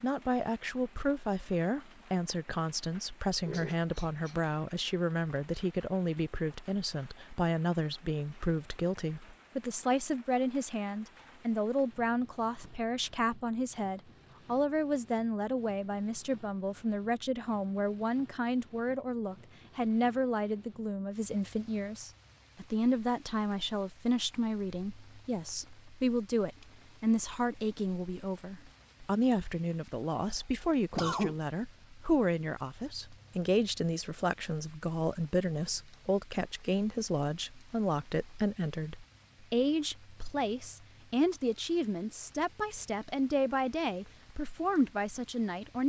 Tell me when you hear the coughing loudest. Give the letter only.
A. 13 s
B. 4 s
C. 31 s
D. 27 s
C.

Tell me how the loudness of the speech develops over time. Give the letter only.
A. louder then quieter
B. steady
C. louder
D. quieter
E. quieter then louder
B.